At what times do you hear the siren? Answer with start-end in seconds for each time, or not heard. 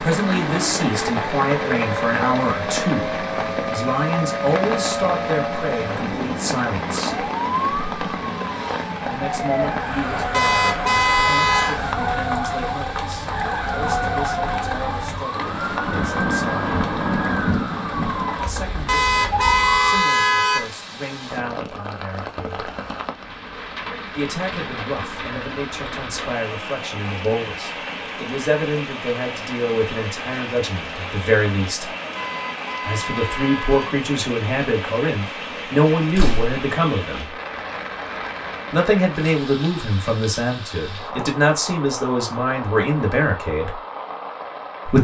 0.1-20.1.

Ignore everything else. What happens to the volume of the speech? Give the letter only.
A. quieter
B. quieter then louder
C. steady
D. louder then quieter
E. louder
B.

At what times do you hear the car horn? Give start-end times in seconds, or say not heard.
10.3-11.8, 18.9-20.7, 32.1-34.0.